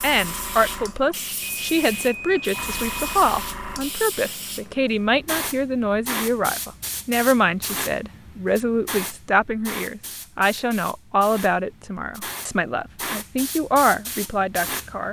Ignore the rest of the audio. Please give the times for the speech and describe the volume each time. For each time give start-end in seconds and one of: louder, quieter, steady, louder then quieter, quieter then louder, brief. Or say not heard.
0.0-15.0 steady.